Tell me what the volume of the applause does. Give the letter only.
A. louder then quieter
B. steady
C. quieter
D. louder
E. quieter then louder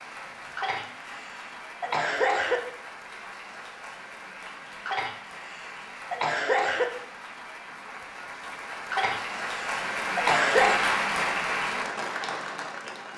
D.